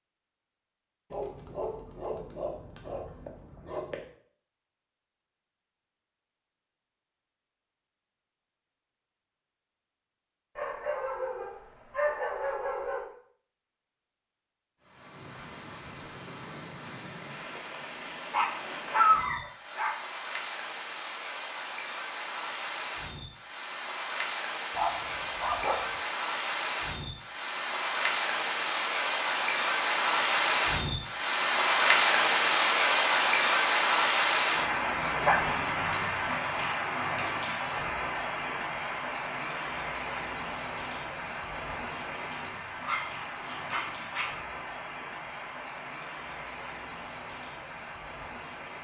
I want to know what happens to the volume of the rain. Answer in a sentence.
The loudness of the rain goes up, then down.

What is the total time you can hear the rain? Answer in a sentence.
The rain can be heard for 34 seconds in total.